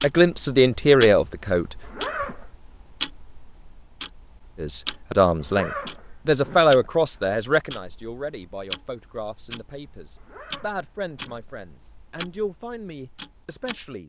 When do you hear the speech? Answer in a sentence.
You can hear the speech from 0.0 to 1.7 s and from 4.5 to 14.0 s.